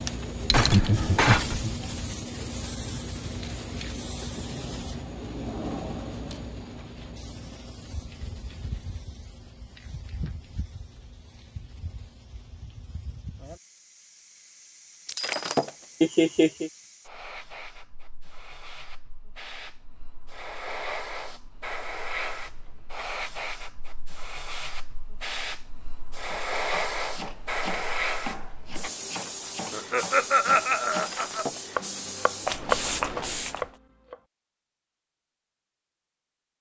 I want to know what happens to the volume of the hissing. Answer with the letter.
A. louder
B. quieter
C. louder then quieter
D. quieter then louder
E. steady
D.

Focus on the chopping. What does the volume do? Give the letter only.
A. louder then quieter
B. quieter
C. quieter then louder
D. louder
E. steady
D.